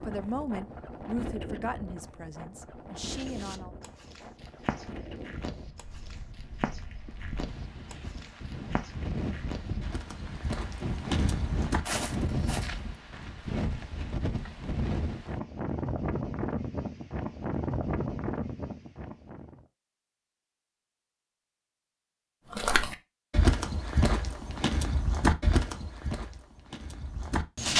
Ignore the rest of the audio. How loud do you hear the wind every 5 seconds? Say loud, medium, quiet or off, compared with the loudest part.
medium, medium, loud, loud, off, off.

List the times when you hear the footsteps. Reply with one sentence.
The footsteps can be heard from 3.0 to 12.8 s and from 22.5 to 27.7 s.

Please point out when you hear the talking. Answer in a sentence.
You can hear the talking from 0.0 to 3.8 s.